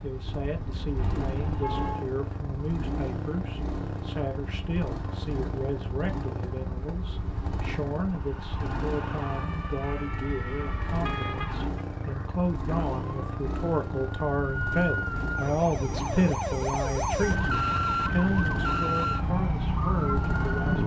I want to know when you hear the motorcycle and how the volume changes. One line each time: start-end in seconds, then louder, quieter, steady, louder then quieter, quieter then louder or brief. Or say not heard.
0.0-20.8 steady.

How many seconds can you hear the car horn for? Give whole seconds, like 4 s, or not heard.
2 s.